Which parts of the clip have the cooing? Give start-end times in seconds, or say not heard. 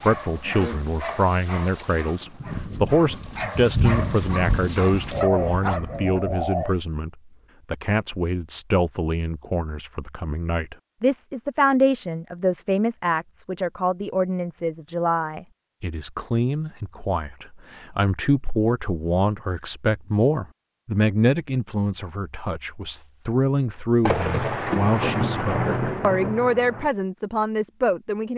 5.1-6.8.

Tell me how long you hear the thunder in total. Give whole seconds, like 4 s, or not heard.
7 s.